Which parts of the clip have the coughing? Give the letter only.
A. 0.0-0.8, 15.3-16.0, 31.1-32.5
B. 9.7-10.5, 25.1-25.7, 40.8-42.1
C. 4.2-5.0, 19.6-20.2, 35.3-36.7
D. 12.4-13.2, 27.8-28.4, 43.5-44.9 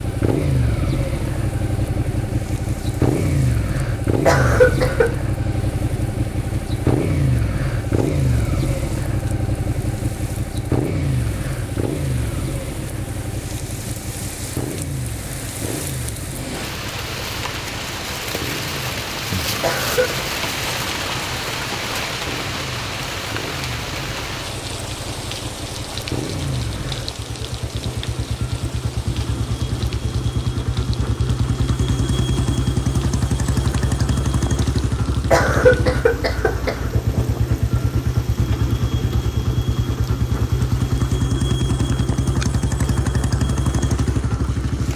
C.